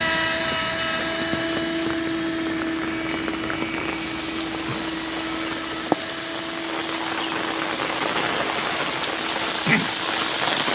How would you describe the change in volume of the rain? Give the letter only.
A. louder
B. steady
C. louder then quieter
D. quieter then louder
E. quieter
A.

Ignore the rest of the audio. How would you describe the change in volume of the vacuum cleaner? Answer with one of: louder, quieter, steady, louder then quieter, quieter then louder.
quieter.